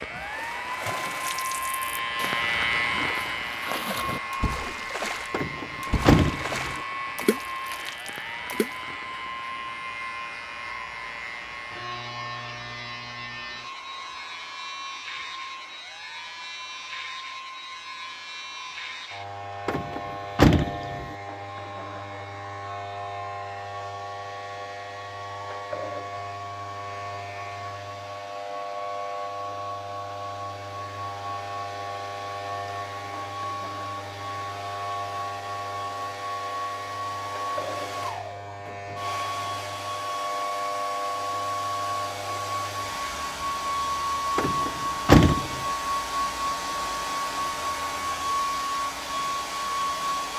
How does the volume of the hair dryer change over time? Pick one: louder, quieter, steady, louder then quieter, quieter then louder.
quieter then louder.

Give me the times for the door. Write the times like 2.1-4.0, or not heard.
5.3-6.8, 19.6-21.1, 44.4-45.6.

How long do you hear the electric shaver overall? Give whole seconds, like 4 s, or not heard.
50 s.